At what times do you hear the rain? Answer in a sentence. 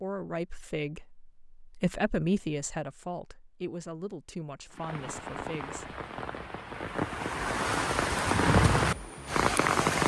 The rain can be heard from 4.7 to 10.0 s.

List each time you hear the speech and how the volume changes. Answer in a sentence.
You can hear the speech from 0.0 to 6.0 s, getting louder then quieter.